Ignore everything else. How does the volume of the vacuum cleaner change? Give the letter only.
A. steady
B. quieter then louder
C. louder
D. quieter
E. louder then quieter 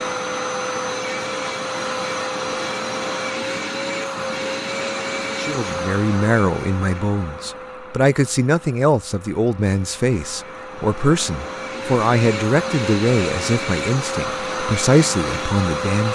B.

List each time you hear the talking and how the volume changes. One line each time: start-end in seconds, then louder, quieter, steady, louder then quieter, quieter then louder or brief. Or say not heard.
5.3-16.0 steady.